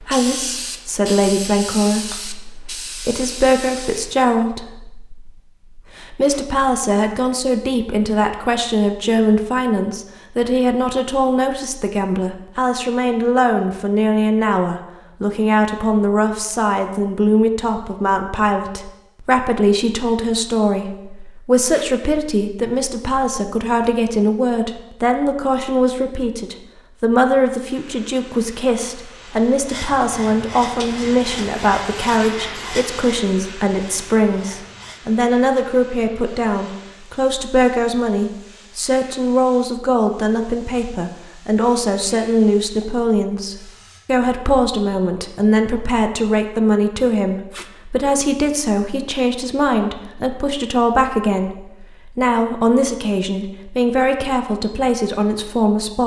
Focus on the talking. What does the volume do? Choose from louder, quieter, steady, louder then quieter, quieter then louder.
steady.